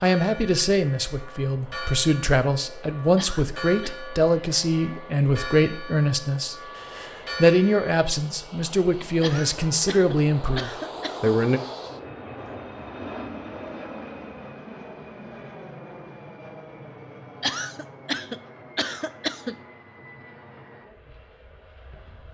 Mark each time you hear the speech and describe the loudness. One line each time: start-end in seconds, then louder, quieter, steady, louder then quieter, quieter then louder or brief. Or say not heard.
0.0-11.6 steady.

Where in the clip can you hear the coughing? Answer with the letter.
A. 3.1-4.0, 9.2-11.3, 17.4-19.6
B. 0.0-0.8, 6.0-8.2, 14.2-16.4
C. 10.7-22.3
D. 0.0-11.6
A.